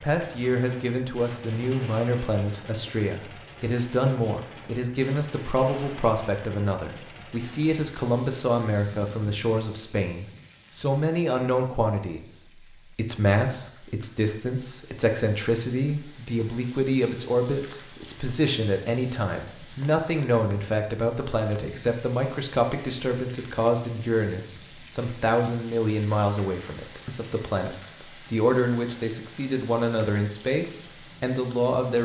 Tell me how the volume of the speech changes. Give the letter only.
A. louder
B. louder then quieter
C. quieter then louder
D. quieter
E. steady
E.